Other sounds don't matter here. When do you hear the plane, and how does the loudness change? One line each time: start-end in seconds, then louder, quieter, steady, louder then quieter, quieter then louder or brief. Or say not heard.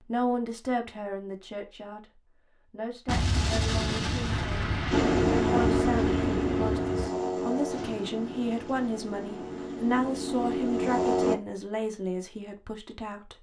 4.9-11.3 quieter then louder.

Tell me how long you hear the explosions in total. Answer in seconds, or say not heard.
4 s.